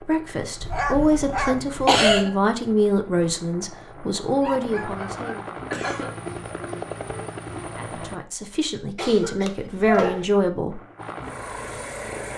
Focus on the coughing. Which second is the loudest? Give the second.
2 s.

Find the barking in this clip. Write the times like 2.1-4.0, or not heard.
0.7-1.9, 4.4-6.1, 9.4-10.2.